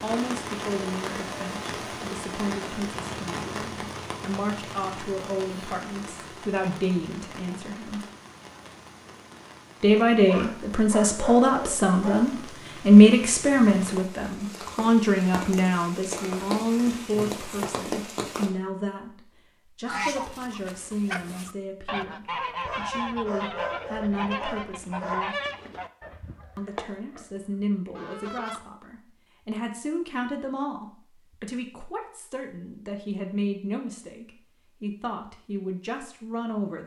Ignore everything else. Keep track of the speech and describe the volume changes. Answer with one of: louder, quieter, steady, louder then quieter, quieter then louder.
louder then quieter.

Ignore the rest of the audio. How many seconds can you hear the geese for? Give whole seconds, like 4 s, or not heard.
9 s.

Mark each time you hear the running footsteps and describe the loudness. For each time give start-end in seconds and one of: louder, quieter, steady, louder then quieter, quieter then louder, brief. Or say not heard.
not heard.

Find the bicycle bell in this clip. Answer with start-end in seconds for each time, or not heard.
not heard.